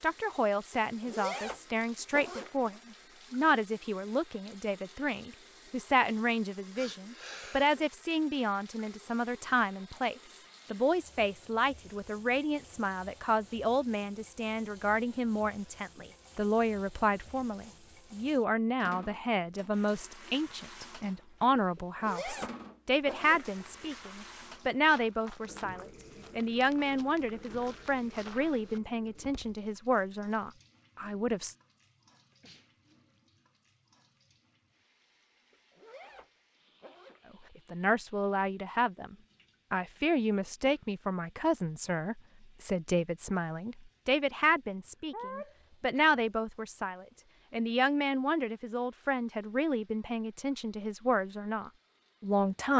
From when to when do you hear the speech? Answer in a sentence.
The speech can be heard from 0.0 to 31.6 s and from 37.7 to 52.7 s.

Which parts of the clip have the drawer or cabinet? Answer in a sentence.
You can't hear the drawer or cabinet here.